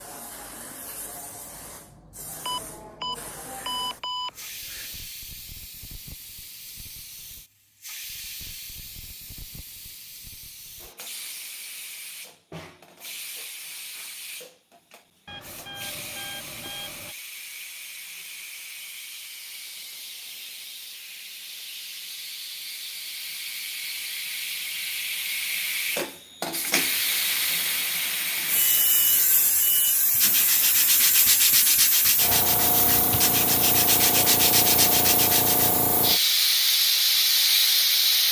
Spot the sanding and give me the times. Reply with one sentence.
You can hear the sanding from 30.1 to 35.8 s.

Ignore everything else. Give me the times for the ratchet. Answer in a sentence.
The ratchet can't be heard in this clip.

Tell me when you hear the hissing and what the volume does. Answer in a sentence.
The hissing can be heard from 0.0 to 38.2 s, getting louder.